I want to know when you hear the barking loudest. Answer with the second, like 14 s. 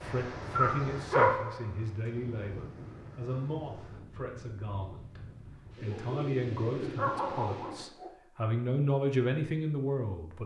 1 s.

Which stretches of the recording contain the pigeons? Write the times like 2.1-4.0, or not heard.
5.8-7.8.